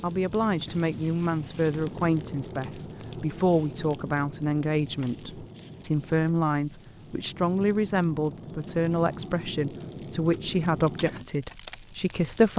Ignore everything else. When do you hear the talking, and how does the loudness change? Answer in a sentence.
The talking can be heard from 0.0 to 12.5 s, at a steady volume.